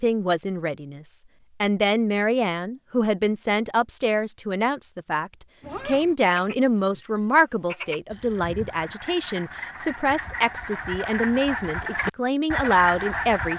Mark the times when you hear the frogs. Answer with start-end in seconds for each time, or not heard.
5.6-13.5.